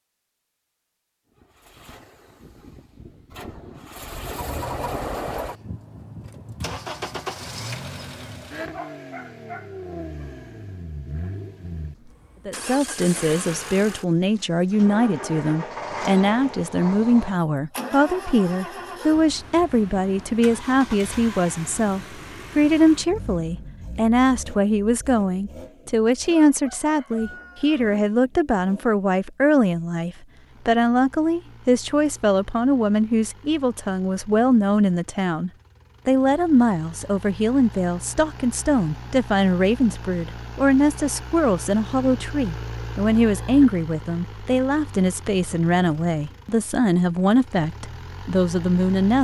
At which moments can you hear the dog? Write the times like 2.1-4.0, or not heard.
8.7-10.3.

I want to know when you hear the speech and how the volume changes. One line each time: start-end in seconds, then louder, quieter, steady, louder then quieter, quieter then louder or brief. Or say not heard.
12.4-49.1 steady.